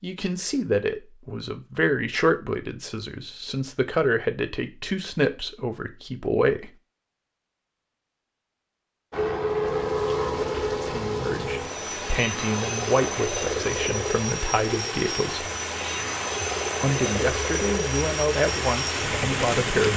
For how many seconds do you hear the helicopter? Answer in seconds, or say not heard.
11 s.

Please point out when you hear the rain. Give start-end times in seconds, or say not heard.
9.6-19.9.